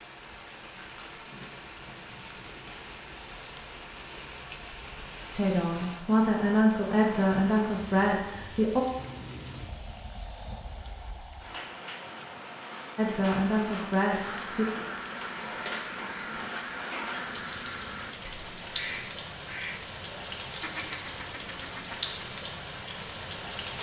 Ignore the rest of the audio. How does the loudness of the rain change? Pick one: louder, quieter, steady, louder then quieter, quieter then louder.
louder.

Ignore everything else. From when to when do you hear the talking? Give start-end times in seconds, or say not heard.
5.2-8.8, 12.9-14.7.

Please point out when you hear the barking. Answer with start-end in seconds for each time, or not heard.
not heard.